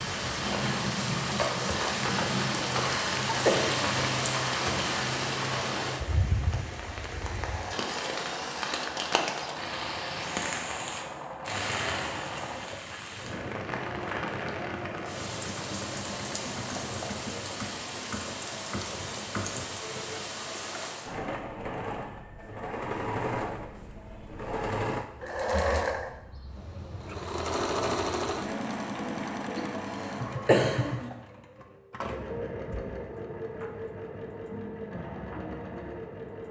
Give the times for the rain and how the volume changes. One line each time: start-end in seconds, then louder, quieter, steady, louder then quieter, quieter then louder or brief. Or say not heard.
0.0-21.1 quieter.